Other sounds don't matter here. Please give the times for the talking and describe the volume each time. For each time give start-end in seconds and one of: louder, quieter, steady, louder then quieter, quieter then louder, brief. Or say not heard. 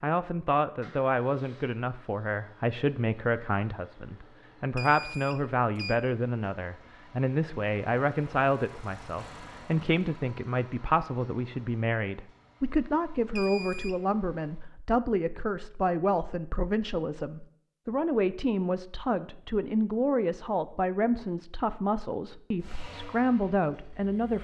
0.0-24.3 steady.